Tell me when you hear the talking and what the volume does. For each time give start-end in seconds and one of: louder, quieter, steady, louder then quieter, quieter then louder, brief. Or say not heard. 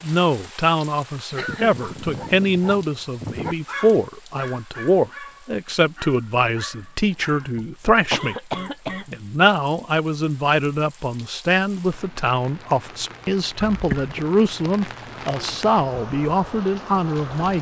0.0-8.3 steady
9.1-17.5 steady.